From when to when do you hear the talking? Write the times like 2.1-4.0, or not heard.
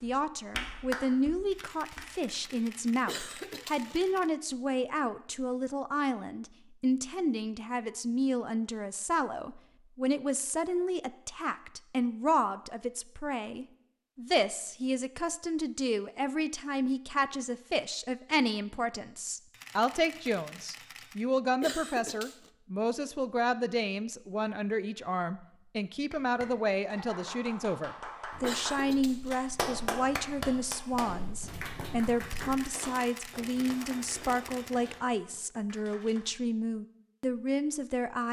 0.0-38.2.